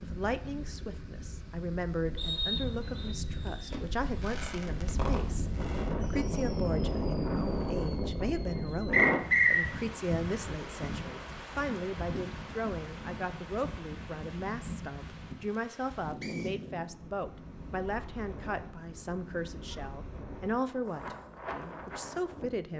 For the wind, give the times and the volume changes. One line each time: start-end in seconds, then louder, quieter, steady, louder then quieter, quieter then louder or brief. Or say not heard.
0.0-22.7 louder then quieter.